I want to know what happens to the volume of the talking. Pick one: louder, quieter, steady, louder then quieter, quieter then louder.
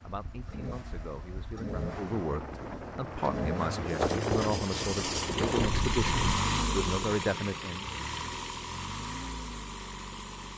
louder.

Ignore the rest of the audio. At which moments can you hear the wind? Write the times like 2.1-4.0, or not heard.
0.1-6.4.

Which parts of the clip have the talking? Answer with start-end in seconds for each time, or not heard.
0.0-8.0.